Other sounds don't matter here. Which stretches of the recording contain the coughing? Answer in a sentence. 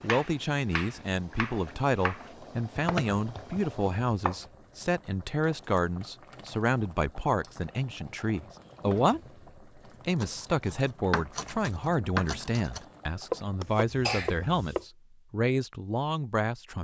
You can hear the coughing from 13.6 to 14.8 s.